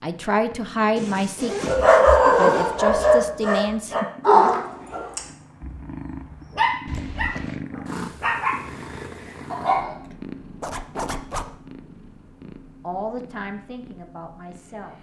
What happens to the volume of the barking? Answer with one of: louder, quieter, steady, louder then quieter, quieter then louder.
quieter.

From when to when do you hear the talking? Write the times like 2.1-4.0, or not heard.
0.0-1.7, 2.4-4.0, 12.8-14.9.